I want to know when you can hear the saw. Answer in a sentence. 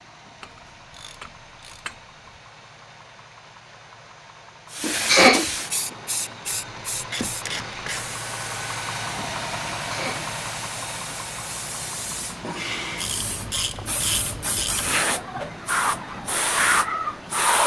The saw can't be heard in this clip.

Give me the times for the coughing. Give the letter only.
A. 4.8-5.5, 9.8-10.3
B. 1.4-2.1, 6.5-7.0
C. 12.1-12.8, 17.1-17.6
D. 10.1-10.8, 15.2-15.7
A.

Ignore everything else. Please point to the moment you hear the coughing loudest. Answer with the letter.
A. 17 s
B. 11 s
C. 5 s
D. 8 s
C.